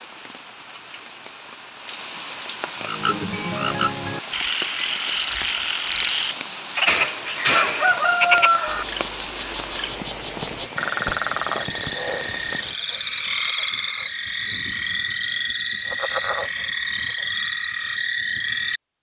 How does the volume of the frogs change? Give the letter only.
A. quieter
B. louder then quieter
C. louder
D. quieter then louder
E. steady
E.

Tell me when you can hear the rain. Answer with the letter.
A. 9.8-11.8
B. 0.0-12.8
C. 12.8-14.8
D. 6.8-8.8
B.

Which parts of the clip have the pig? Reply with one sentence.
You can't hear the pig here.